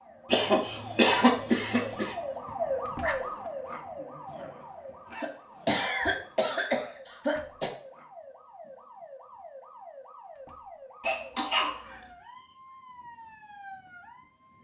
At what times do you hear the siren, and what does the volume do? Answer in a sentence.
You can hear the siren from 0.0 to 14.5 s, getting quieter.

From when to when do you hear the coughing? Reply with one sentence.
The coughing can be heard from 0.3 to 2.1 s, from 5.2 to 7.7 s and from 11.0 to 12.0 s.